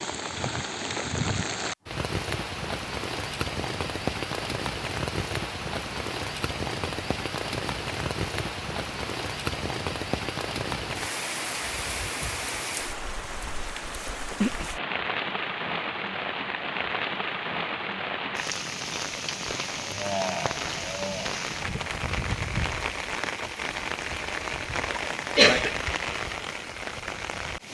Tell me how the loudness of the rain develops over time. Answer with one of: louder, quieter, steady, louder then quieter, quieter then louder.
steady.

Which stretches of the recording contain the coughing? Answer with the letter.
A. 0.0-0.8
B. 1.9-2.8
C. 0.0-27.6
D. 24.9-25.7
D.